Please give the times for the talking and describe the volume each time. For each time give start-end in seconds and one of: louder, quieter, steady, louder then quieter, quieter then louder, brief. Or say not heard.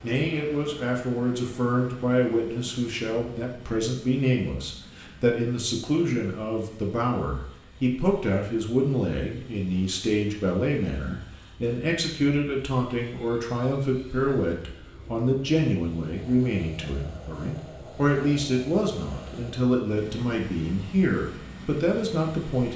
0.0-22.7 steady.